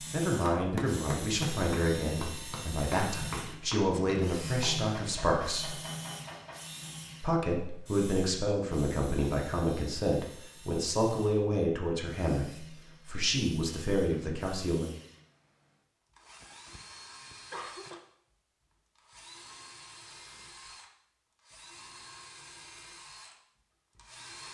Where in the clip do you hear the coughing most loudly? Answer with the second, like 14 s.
18 s.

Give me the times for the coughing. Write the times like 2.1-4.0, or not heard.
16.2-18.0.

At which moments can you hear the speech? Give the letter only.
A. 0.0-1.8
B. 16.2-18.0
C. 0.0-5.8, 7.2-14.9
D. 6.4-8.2
C.